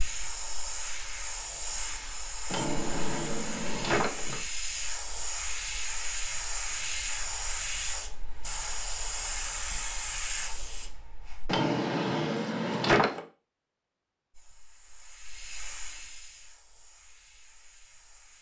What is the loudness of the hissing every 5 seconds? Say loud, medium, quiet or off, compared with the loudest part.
loud, loud, medium, quiet.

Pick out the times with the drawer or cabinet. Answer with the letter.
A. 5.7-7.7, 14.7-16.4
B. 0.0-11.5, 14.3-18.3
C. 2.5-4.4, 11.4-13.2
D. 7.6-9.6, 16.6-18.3
C.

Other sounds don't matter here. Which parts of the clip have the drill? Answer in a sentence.
You can't hear the drill here.